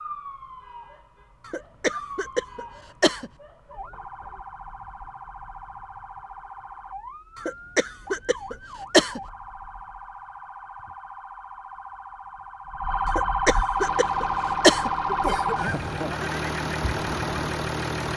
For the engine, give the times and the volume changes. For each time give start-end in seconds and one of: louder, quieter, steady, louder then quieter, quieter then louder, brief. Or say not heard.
13.8-18.1 louder.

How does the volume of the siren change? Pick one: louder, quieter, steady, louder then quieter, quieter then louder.
louder.